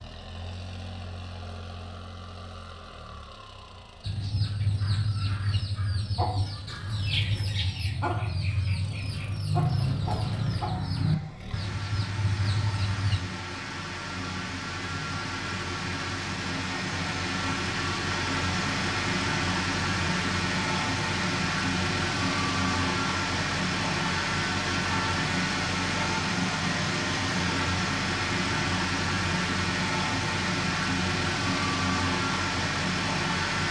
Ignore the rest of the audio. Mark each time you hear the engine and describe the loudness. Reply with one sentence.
The engine can be heard from 0.0 to 33.6 s, getting louder.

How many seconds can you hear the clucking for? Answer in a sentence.
The clucking can be heard for 9 seconds in total.